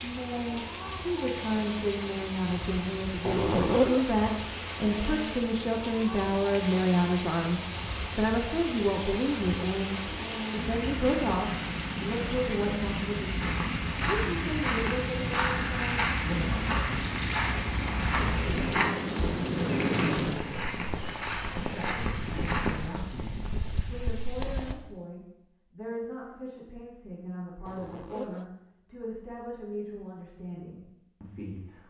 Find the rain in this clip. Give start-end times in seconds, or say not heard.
0.0-24.8.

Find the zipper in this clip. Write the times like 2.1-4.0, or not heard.
3.2-4.0, 27.6-28.4.